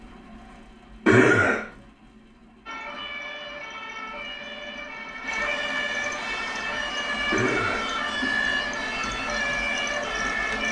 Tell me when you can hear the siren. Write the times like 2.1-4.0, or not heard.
2.6-10.6.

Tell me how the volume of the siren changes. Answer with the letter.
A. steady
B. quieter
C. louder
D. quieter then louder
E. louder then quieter
C.